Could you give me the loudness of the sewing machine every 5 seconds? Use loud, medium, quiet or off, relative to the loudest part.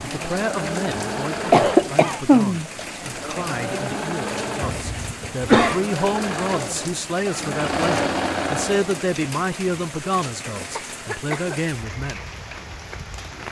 loud, loud, off.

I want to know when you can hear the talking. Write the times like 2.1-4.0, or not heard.
0.0-12.2.